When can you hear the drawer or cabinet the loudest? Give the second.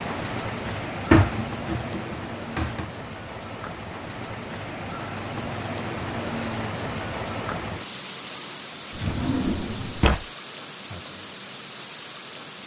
1 s.